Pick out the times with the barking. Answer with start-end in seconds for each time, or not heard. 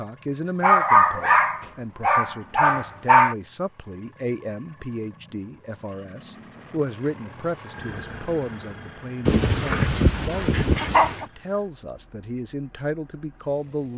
0.6-3.4, 9.2-11.2.